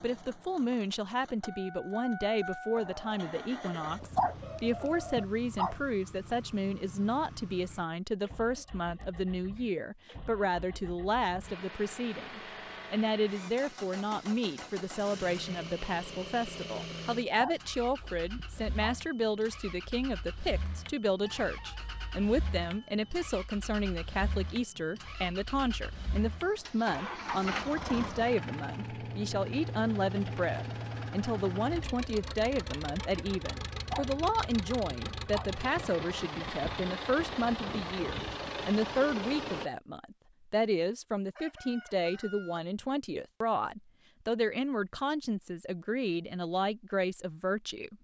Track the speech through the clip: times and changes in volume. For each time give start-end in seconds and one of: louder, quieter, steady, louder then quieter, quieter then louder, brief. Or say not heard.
0.0-47.9 steady.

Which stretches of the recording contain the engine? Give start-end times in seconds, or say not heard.
0.0-39.7.